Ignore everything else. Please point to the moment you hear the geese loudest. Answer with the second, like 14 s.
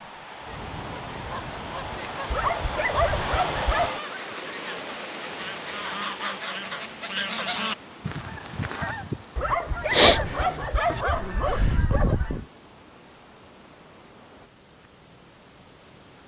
10 s.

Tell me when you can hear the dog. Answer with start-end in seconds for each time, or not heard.
2.2-3.9, 9.3-12.2.